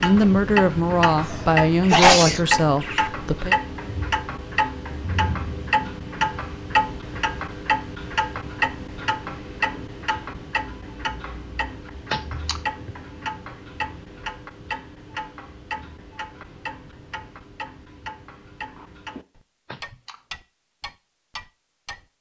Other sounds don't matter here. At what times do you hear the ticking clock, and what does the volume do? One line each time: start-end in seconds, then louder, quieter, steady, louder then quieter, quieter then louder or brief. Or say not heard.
0.0-22.1 quieter.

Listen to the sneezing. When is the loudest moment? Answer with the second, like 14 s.
2 s.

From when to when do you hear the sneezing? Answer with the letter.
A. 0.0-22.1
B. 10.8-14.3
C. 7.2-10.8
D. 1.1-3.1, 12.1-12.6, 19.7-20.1
D.